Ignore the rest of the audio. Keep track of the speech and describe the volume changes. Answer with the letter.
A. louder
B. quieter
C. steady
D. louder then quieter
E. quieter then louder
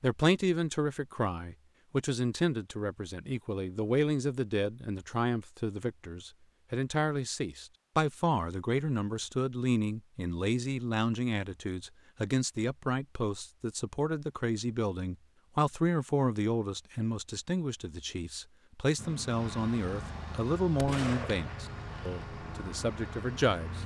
C.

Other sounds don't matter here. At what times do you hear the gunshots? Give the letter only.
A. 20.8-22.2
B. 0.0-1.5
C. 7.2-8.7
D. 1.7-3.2
A.